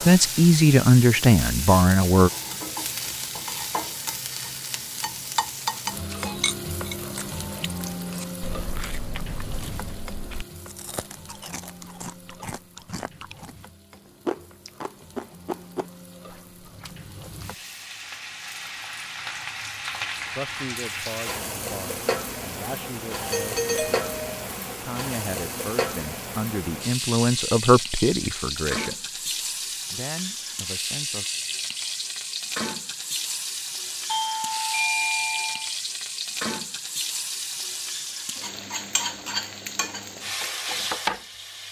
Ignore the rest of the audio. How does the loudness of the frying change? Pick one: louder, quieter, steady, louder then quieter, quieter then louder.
quieter then louder.